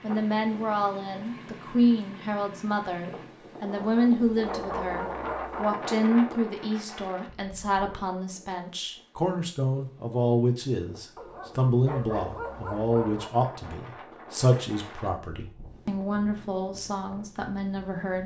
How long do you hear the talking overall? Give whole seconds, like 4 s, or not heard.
18 s.